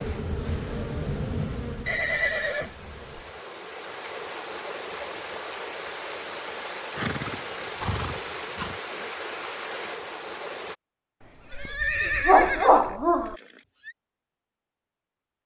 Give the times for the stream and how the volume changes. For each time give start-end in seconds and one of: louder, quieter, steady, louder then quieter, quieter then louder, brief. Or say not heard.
0.0-10.8 louder.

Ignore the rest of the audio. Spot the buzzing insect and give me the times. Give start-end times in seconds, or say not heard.
0.0-3.4.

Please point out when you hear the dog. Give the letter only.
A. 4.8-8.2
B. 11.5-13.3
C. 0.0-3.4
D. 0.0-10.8
B.